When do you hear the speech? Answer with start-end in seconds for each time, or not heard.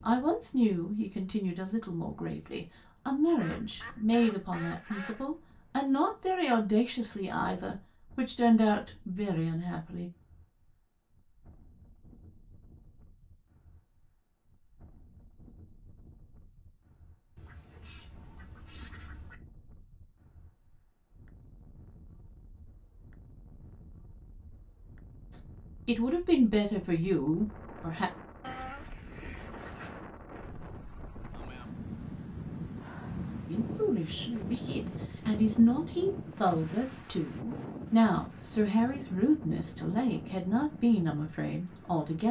0.1-10.1, 25.3-28.1, 33.5-42.2.